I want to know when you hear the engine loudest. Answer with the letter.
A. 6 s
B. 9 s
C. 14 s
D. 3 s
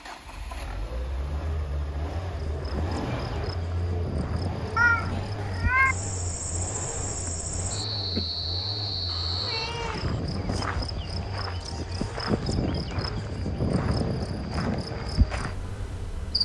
D.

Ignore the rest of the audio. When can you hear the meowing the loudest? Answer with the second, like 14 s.
5 s.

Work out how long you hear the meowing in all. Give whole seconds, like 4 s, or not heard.
2 s.